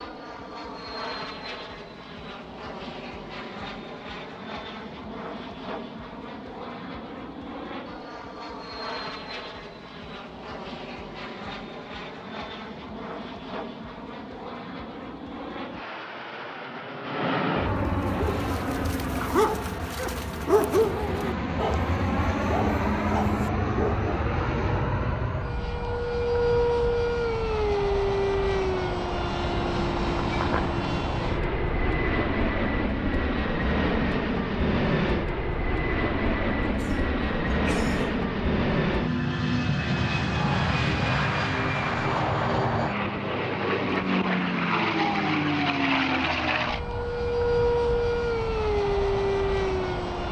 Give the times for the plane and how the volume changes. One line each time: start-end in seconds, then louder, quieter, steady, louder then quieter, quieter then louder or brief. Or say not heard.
0.0-50.2 louder.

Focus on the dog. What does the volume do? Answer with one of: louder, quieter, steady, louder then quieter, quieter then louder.
louder then quieter.